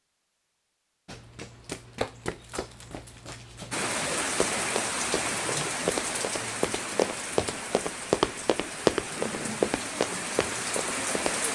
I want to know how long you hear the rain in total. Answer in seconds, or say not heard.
8 s.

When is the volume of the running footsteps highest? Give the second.
9 s.